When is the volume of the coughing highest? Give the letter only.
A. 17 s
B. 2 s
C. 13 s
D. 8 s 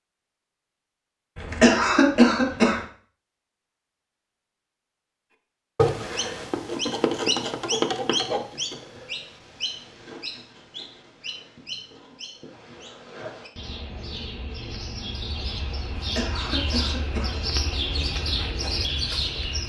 B.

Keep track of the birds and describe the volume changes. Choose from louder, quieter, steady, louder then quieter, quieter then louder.
quieter then louder.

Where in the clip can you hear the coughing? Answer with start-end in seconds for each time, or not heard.
1.4-2.8, 15.9-17.4.